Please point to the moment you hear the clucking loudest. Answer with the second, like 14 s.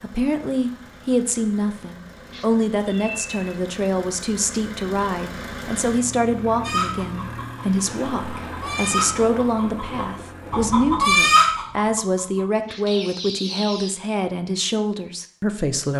11 s.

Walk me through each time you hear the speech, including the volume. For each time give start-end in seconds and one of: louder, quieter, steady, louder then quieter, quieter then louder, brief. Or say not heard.
0.0-15.9 steady.